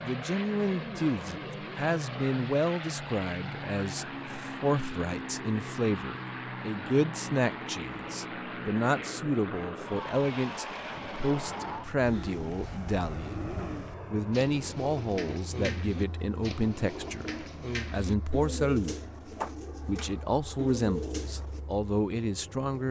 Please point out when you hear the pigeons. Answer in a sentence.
You can hear the pigeons from 12.0 to 21.6 s.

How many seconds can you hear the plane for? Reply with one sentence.
The plane can be heard for 23 seconds in total.